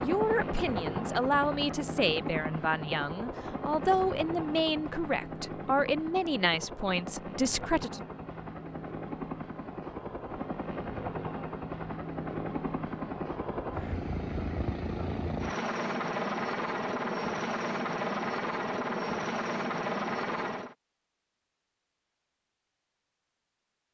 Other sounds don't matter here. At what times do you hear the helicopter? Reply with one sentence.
The helicopter can be heard from 0.0 to 20.8 s.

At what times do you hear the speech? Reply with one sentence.
The speech can be heard from 0.0 to 8.1 s.